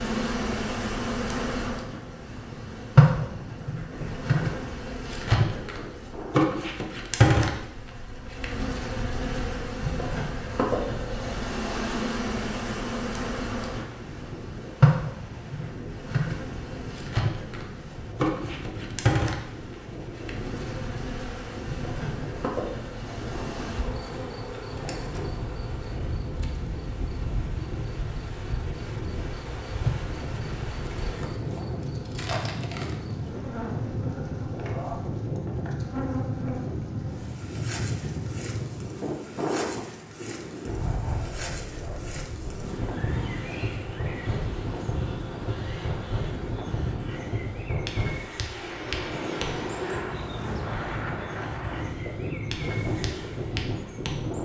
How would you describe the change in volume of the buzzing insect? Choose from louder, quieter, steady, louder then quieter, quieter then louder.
quieter.